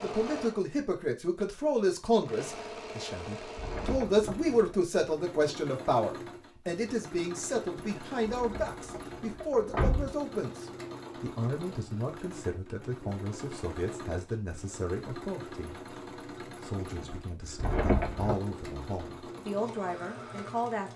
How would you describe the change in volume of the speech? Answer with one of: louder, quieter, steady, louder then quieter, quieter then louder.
quieter.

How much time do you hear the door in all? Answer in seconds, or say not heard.
4 s.